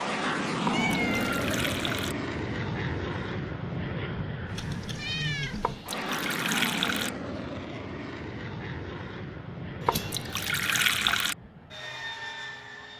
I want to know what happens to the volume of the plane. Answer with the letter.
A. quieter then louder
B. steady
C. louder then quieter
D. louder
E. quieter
E.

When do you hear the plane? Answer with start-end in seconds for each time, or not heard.
0.0-12.9.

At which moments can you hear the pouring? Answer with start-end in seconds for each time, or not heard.
0.7-2.1, 5.6-7.1, 9.8-11.3.